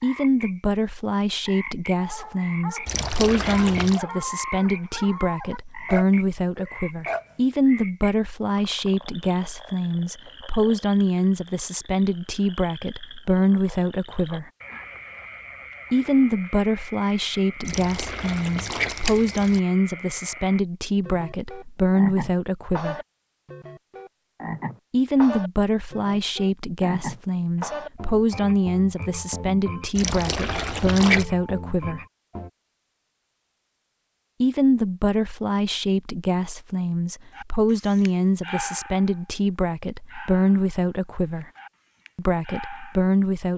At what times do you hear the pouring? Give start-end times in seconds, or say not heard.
2.9-4.0, 17.6-19.6, 29.9-31.2.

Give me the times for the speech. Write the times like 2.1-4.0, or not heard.
0.0-14.5, 15.9-23.0, 24.9-32.0, 34.4-41.5, 42.1-43.5.